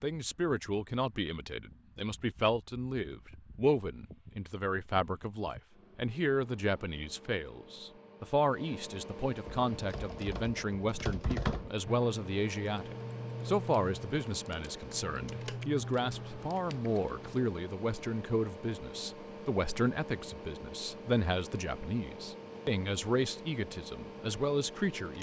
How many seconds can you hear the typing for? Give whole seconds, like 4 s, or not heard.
8 s.